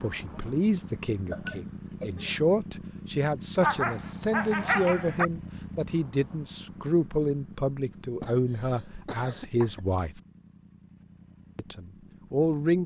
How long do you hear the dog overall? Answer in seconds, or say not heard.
2 s.